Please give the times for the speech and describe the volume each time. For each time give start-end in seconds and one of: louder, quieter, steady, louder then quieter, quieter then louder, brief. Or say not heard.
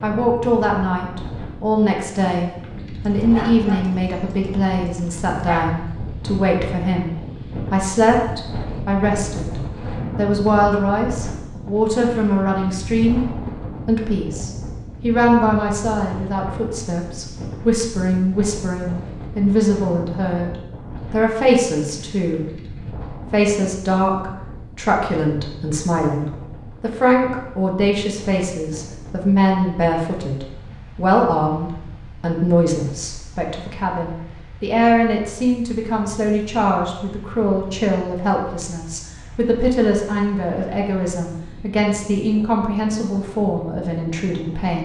0.0-22.6 steady
23.3-44.7 steady.